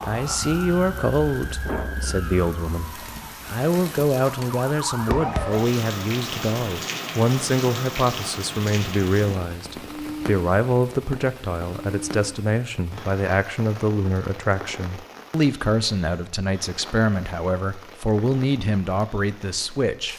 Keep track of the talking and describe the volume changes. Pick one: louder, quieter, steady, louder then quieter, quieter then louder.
steady.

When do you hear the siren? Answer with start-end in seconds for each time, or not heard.
0.0-5.7.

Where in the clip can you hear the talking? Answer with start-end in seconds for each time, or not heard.
0.1-20.1.